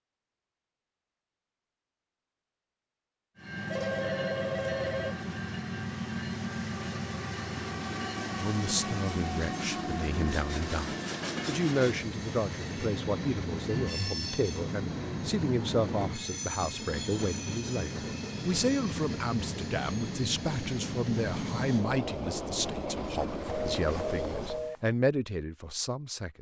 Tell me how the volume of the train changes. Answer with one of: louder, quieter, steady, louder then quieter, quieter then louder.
steady.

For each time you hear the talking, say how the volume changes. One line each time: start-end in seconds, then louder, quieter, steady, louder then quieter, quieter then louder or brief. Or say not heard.
8.2-26.3 steady.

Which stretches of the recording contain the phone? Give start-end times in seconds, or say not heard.
3.7-5.2, 13.7-14.3, 23.4-24.8.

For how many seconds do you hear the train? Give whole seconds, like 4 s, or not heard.
21 s.